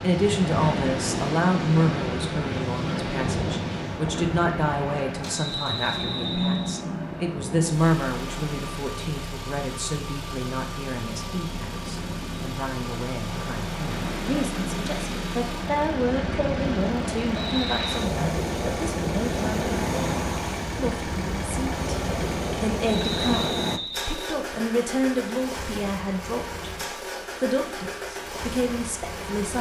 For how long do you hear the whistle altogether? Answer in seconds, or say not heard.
4 s.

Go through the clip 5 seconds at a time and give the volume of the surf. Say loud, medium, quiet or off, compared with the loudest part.
loud, medium, medium, loud, loud, off.